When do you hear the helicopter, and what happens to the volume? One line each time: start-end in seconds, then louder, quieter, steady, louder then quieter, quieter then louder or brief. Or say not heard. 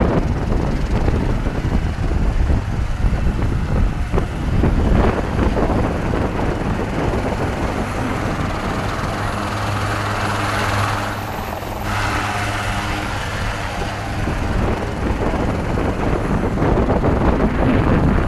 0.0-18.2 louder then quieter.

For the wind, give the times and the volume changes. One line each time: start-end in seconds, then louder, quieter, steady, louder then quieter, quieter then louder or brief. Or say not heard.
0.0-18.2 quieter then louder.